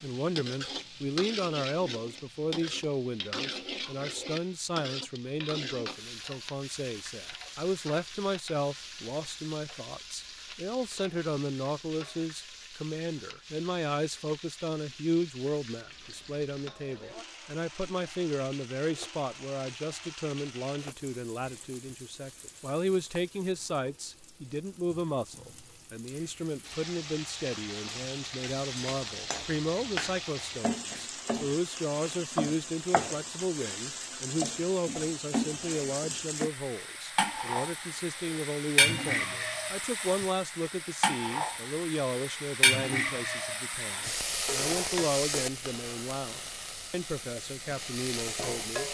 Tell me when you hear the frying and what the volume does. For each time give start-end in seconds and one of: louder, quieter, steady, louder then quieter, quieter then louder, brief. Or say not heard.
0.0-48.8 quieter then louder.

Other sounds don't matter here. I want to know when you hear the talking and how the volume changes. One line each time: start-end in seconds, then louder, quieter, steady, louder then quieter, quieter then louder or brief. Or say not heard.
0.0-48.8 steady.